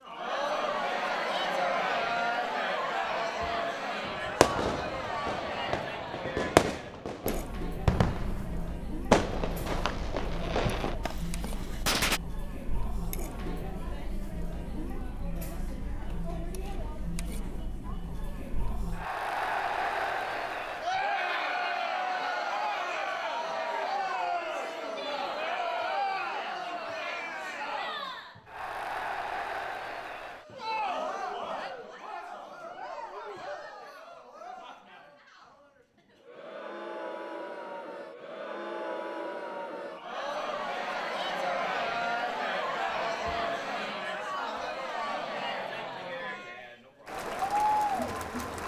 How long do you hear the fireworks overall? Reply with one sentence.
You can hear the fireworks for 8 seconds altogether.